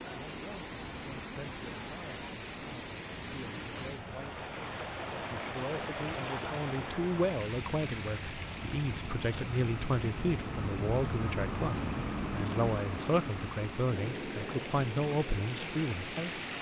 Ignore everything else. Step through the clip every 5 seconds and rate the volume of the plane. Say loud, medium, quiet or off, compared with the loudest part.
quiet, medium, loud, medium.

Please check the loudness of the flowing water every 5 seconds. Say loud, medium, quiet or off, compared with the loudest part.
loud, loud, medium, loud.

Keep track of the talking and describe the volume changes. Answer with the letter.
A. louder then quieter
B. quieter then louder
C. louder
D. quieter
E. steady
C.